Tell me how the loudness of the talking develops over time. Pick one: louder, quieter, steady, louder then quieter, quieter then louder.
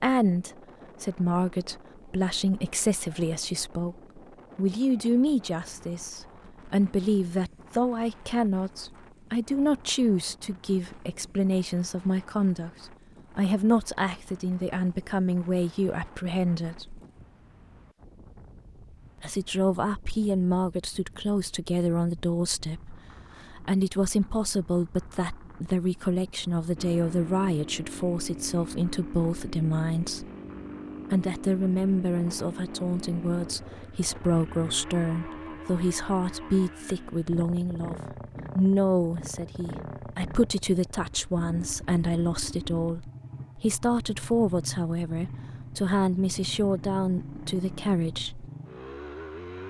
steady.